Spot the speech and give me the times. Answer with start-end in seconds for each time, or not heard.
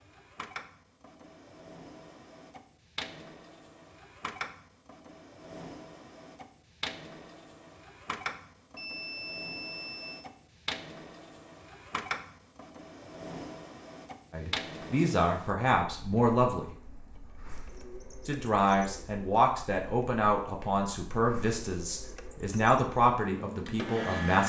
14.3-16.9, 18.2-24.4.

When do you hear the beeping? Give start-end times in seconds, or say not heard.
8.8-10.3.